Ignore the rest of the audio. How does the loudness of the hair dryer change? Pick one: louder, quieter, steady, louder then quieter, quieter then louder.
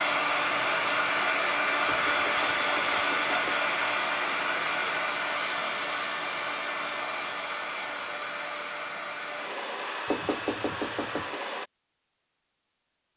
quieter.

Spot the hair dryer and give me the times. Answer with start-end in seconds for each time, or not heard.
0.0-11.7.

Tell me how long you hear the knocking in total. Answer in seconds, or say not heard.
3 s.